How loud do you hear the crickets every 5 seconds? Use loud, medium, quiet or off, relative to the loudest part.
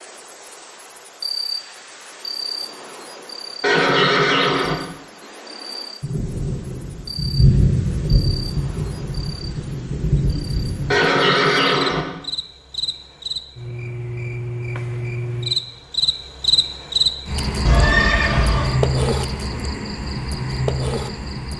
medium, quiet, medium, loud, loud.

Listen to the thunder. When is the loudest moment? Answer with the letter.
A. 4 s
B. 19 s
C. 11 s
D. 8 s
D.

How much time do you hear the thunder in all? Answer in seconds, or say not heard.
5 s.